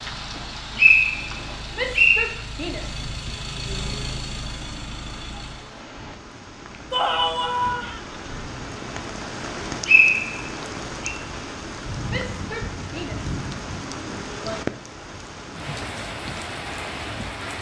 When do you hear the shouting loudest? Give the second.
7 s.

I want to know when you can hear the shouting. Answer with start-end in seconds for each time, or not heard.
1.7-4.0, 6.9-7.9, 12.1-14.7.